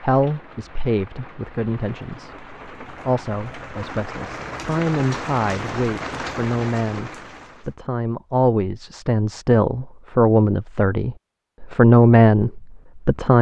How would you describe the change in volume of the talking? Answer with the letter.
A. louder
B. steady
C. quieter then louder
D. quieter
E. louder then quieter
A.